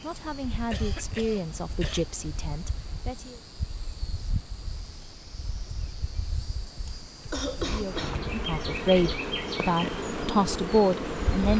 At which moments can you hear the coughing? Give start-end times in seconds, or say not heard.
0.7-2.0, 6.8-8.2.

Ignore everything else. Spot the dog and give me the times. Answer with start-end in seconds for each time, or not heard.
not heard.